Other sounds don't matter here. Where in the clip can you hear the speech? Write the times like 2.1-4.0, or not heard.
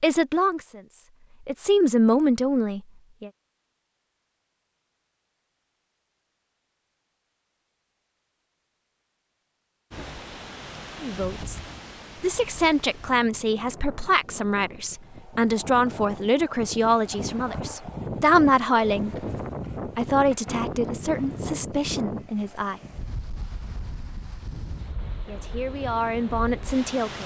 0.0-3.3, 11.0-11.6, 12.2-19.1, 19.9-22.8, 25.2-27.2.